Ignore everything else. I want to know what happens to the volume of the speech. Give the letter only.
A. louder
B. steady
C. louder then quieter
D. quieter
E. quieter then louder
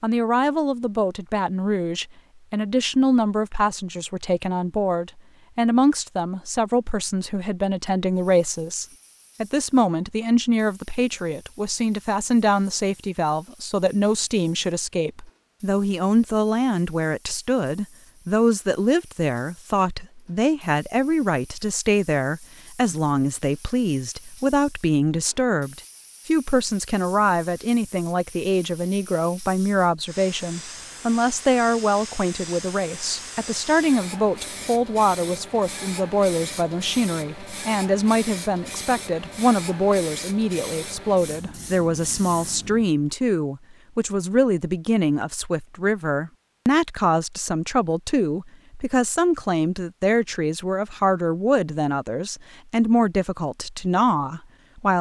B.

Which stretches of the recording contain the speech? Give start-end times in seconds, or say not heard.
0.0-54.9.